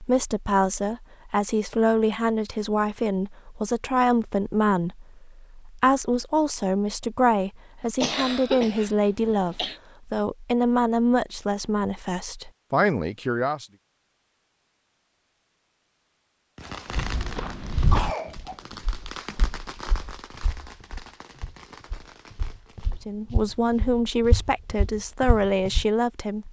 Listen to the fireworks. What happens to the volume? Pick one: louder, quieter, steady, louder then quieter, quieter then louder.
quieter.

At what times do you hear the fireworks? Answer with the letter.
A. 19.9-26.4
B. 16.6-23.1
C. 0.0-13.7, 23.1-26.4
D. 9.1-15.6
B.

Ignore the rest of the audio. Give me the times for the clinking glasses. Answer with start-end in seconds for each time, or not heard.
not heard.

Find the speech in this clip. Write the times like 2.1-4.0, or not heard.
0.0-13.7, 23.1-26.4.